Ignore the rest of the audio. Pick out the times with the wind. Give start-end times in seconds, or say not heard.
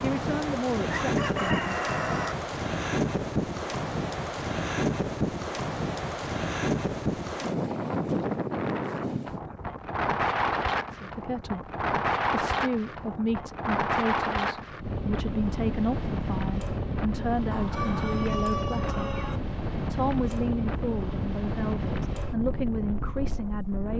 0.0-23.9.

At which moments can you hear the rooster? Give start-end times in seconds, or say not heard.
0.8-2.4, 17.5-19.4.